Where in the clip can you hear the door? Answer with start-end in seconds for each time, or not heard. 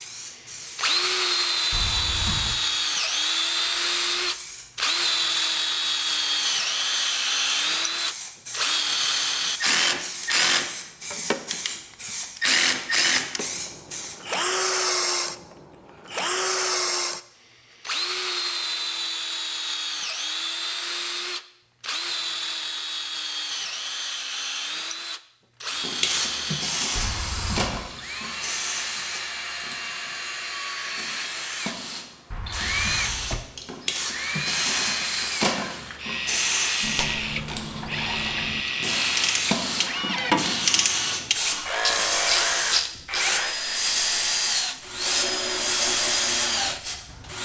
1.7-2.5, 26.9-27.8, 32.3-33.5.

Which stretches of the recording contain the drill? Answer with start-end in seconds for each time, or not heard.
0.0-47.4.